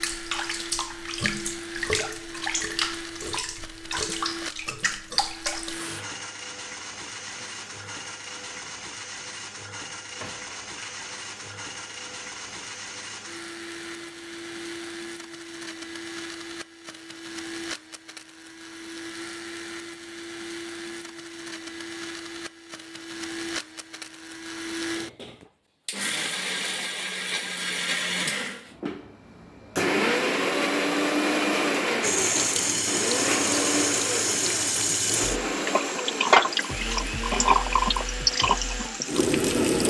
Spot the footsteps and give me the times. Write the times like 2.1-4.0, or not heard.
not heard.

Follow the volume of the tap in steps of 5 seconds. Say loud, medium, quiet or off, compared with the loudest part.
medium, quiet, quiet, off, off, off, loud, loud.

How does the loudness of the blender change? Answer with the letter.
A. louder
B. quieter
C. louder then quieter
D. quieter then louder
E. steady
A.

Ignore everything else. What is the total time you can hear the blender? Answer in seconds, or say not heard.
40 s.